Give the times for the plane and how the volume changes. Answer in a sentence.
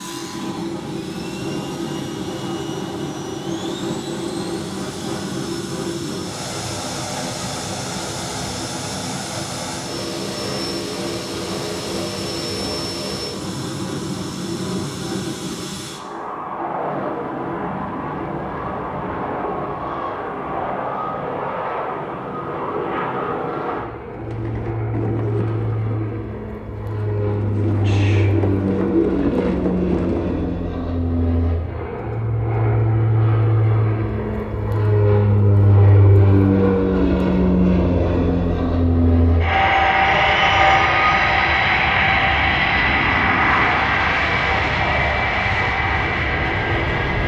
You can hear the plane from 0.0 to 47.2 s, getting louder.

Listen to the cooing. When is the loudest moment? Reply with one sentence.
The volume of the cooing peaks at 29 seconds.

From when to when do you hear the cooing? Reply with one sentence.
You can hear the cooing from 24.1 to 30.5 s.